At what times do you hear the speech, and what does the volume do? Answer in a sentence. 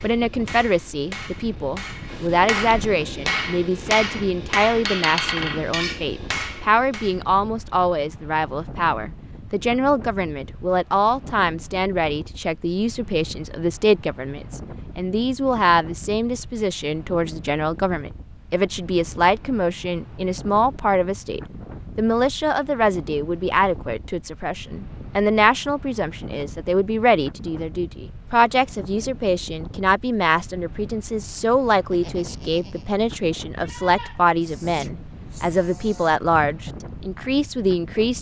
The speech can be heard from 0.0 to 38.1 s, at a steady volume.